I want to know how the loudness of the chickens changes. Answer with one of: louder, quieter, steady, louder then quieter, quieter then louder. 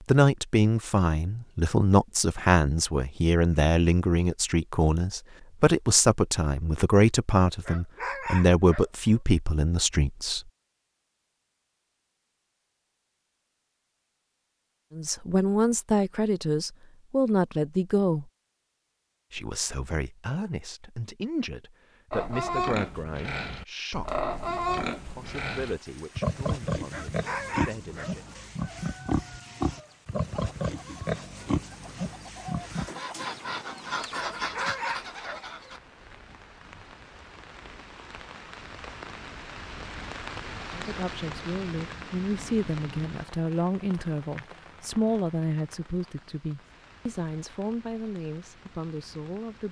louder.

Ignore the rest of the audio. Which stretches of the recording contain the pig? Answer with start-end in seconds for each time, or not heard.
22.1-32.9.